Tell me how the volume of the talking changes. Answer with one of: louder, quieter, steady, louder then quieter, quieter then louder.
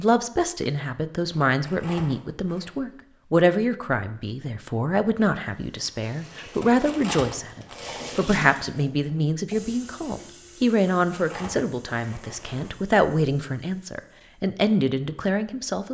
steady.